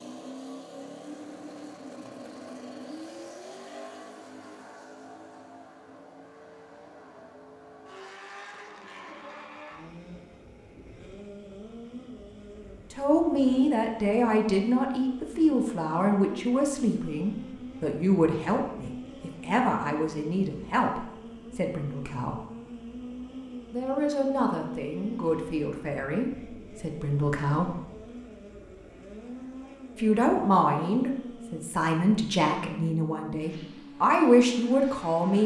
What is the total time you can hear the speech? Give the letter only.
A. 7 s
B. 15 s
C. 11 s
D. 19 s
D.